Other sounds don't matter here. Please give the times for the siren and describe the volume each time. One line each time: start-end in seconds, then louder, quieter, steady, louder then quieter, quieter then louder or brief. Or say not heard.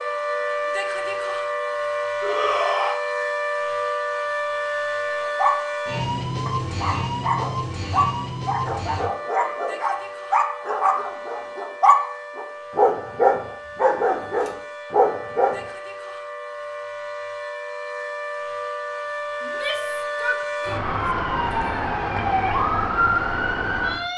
0.0-24.1 quieter then louder.